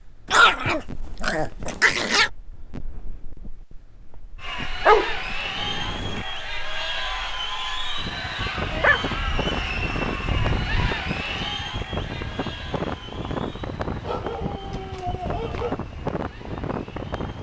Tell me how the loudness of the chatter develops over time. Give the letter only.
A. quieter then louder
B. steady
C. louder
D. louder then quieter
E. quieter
E.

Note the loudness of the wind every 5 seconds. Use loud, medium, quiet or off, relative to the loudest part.
quiet, loud, loud, loud.